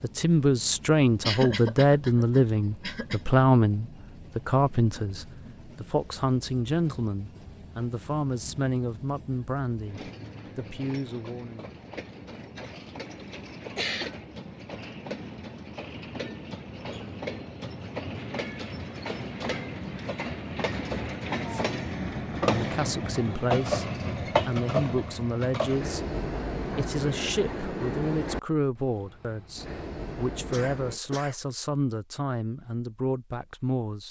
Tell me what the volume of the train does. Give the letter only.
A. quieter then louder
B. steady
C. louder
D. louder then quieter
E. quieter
C.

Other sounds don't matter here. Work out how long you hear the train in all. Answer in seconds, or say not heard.
31 s.